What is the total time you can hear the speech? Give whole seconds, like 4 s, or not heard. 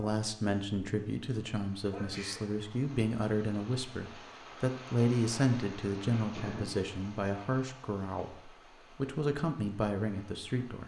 11 s.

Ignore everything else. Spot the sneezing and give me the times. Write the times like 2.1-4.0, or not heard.
1.9-2.5, 6.2-6.8.